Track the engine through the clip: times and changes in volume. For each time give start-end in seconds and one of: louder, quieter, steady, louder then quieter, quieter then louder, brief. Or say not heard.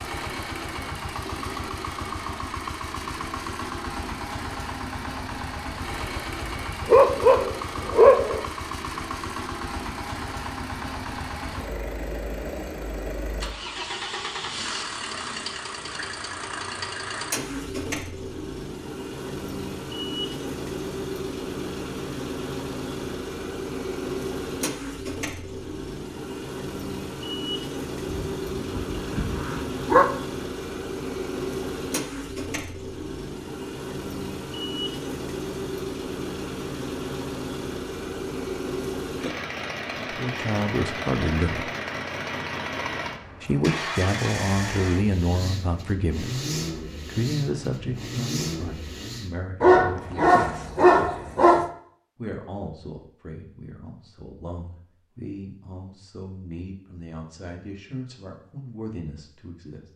0.0-49.4 steady.